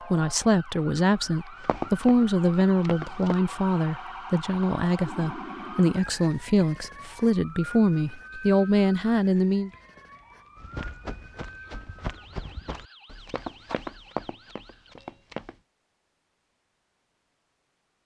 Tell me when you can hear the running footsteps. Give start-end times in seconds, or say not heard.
1.6-3.4, 10.6-15.6.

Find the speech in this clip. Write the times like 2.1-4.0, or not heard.
0.1-9.7.